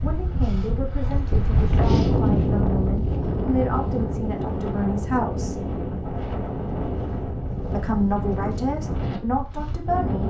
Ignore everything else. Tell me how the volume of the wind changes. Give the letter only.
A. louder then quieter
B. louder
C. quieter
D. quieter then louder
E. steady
C.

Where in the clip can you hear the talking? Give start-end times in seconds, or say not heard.
0.0-5.6, 7.7-10.2.